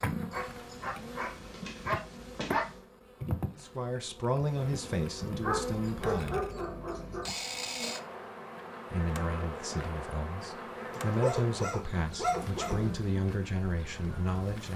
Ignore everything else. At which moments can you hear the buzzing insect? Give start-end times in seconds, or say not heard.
0.0-14.7.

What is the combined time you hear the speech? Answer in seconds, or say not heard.
9 s.